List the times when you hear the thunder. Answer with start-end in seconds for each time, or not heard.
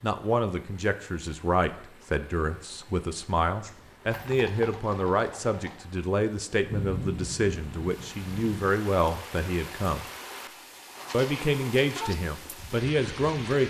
6.7-8.7.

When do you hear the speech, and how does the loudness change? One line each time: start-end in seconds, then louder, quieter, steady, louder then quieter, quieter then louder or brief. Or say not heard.
0.0-10.1 steady
11.1-13.6 brief.